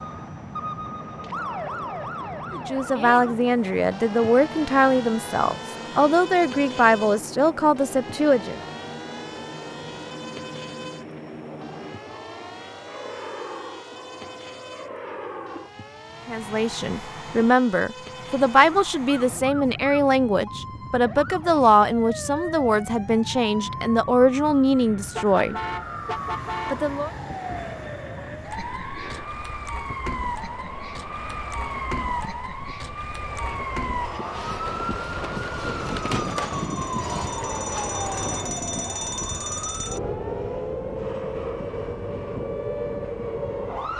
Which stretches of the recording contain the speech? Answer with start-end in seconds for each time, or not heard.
2.5-8.6, 16.2-25.6, 26.7-27.1.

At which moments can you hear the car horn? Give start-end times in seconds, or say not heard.
25.1-26.9.